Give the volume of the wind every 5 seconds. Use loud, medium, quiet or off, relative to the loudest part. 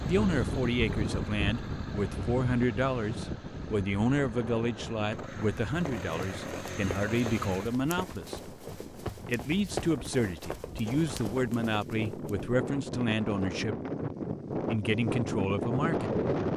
medium, quiet, medium, loud.